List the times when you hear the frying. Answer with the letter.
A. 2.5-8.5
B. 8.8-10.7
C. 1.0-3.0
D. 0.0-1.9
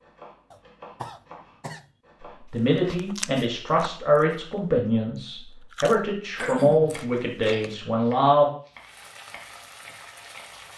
B.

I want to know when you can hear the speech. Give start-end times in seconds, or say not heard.
2.5-8.5.